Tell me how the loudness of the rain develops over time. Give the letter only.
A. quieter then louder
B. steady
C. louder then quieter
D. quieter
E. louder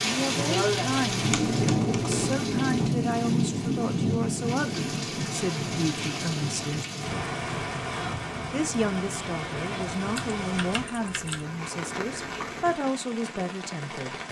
D.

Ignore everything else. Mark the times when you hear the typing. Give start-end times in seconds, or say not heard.
0.3-2.4, 10.2-11.4.